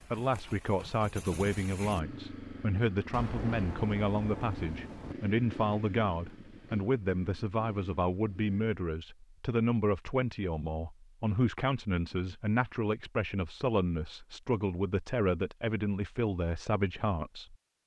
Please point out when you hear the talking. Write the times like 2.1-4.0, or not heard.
0.1-17.8.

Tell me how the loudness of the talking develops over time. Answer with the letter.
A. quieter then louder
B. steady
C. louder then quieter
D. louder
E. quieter
B.